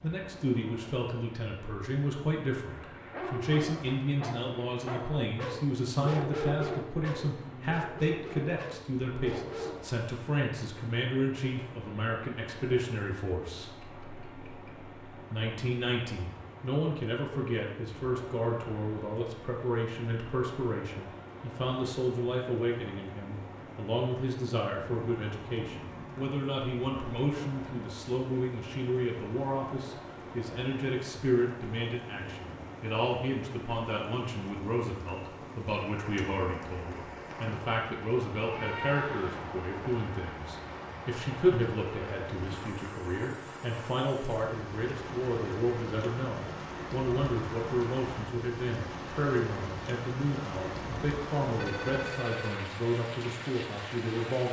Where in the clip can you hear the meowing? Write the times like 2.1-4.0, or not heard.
13.7-14.7, 24.8-26.4, 38.4-39.5.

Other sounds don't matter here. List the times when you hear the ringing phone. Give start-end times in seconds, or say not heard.
51.6-52.7.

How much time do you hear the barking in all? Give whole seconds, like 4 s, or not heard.
7 s.